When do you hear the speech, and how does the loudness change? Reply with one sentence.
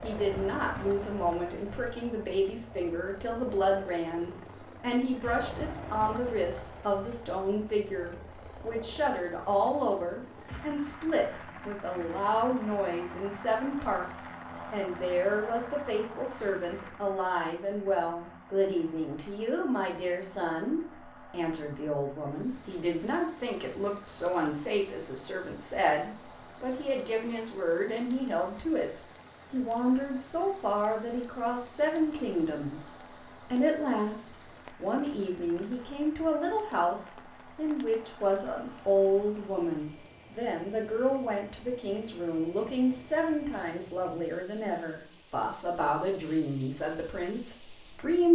You can hear the speech from 0.0 to 48.3 s, at a steady volume.